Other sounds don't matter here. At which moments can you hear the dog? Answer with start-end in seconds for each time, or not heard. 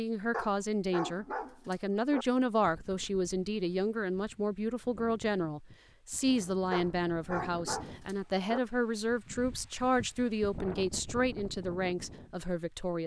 0.3-2.2, 6.7-8.6.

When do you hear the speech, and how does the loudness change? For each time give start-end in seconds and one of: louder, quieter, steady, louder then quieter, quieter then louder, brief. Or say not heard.
0.0-13.0 steady.